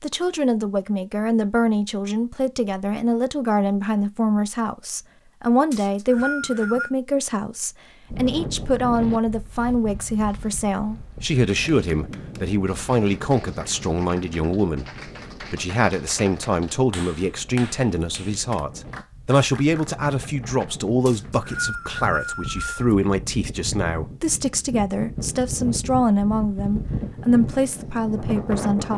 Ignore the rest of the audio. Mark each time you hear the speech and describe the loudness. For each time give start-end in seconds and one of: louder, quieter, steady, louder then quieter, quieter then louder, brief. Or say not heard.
0.0-28.9 steady.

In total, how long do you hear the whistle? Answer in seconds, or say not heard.
3 s.